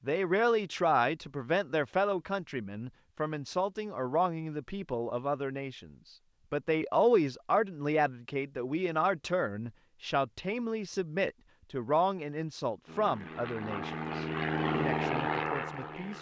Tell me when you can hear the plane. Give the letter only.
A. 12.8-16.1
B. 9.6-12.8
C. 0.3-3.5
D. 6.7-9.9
A.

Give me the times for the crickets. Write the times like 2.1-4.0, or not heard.
not heard.